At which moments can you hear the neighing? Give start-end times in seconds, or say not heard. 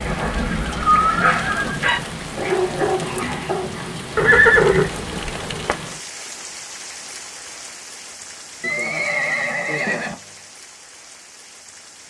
0.1-1.9, 4.2-5.8, 8.6-10.2.